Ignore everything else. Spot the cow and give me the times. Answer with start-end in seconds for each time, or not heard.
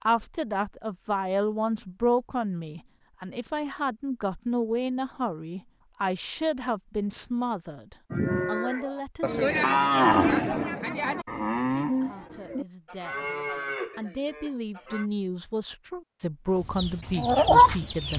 8.1-15.1.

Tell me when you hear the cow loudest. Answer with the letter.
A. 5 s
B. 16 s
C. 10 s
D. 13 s
C.